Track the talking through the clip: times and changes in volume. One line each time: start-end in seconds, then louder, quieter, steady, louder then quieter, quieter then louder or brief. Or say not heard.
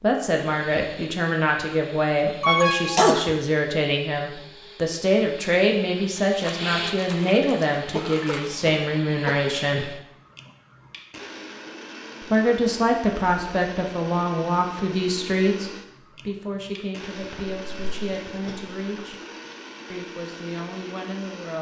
0.0-10.0 steady
12.2-19.2 quieter
19.9-21.5 brief.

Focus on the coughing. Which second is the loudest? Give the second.
3 s.